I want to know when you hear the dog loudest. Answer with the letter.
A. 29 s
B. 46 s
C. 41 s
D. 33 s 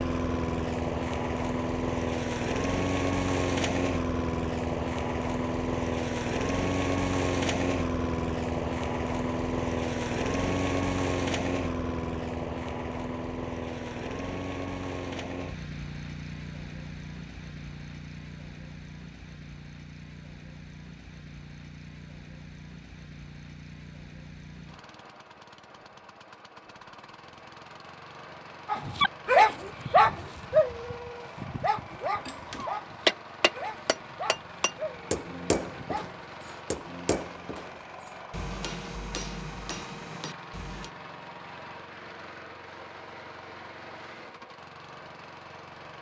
A.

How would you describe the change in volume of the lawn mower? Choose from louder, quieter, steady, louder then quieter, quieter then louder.
quieter.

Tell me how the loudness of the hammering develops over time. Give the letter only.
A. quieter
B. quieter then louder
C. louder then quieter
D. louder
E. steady
A.